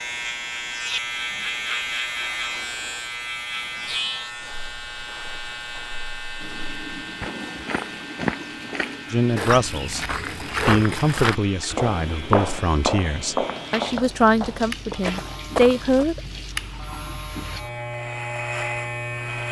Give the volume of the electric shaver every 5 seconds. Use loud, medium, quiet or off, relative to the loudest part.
loud, medium, medium, loud.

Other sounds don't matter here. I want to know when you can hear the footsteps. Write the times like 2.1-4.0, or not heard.
4.3-16.1.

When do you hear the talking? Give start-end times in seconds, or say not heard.
9.1-16.2.